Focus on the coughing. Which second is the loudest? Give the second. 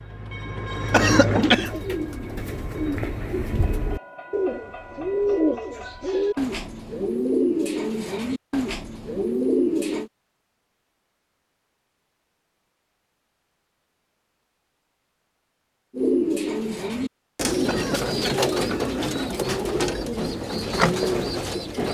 1 s.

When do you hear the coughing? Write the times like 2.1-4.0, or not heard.
0.9-1.8, 17.6-19.3.